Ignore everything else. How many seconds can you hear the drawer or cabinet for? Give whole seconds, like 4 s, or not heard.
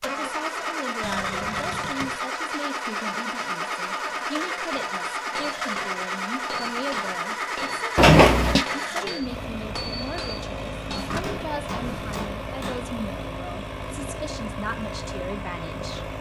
3 s.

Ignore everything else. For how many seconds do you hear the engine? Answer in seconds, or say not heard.
16 s.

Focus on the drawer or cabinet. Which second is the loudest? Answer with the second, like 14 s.
8 s.